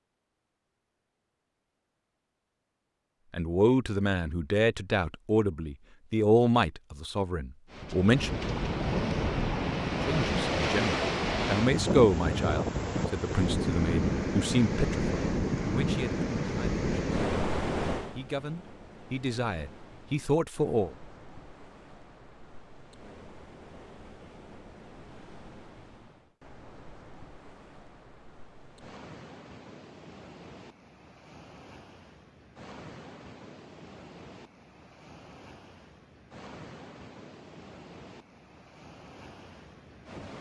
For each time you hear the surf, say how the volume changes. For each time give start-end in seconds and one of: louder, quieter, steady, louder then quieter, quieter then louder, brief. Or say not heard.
7.7-40.3 quieter.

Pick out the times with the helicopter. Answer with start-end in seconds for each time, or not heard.
not heard.